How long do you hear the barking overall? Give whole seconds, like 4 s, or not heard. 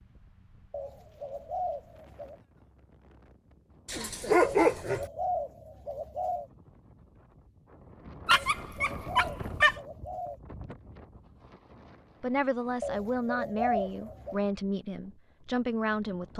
3 s.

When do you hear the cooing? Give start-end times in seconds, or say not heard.
0.7-2.4, 4.4-6.5, 8.3-10.4, 12.8-14.4.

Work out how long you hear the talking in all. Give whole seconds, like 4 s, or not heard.
4 s.